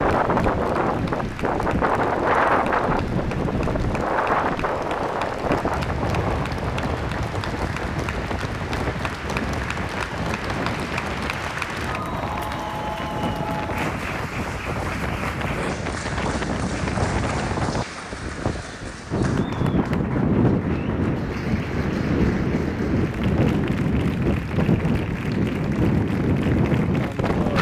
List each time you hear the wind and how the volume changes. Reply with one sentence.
The wind can be heard from 0.0 to 27.5 s, getting quieter then louder.